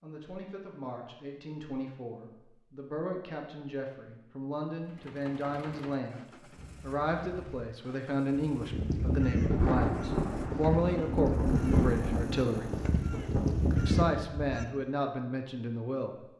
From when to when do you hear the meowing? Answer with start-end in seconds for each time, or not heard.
not heard.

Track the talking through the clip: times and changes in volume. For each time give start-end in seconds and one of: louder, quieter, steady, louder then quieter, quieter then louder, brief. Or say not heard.
0.0-12.8 louder
13.8-16.1 brief.